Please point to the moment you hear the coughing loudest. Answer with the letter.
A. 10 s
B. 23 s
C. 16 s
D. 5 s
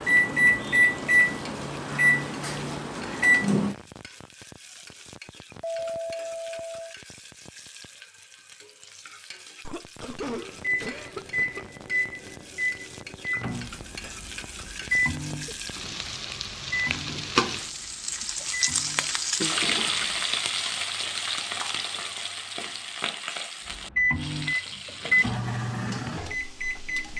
A.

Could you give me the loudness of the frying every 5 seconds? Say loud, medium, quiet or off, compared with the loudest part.
quiet, quiet, quiet, loud, loud, quiet.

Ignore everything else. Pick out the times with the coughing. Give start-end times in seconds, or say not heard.
9.6-11.7, 15.4-16.0.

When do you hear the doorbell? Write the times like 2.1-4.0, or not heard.
5.6-7.0.